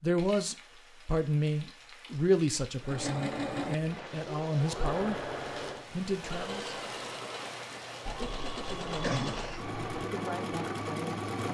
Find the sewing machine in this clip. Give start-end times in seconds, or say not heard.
2.8-11.4.